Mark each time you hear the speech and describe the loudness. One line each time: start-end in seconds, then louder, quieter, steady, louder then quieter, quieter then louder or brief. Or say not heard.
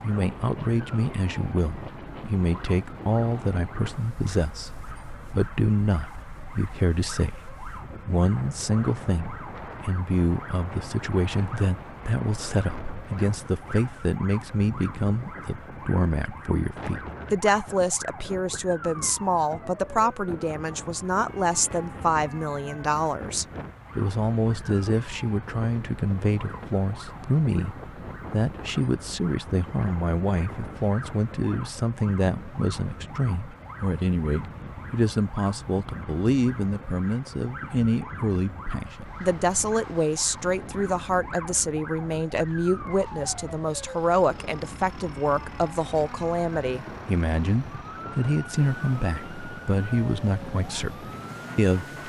0.0-52.0 steady.